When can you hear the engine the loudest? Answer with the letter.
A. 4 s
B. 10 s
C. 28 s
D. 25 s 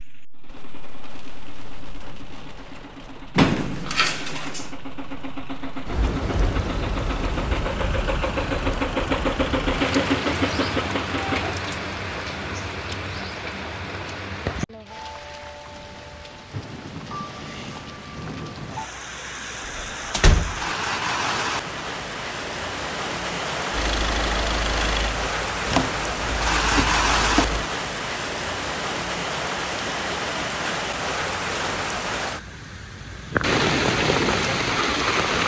B.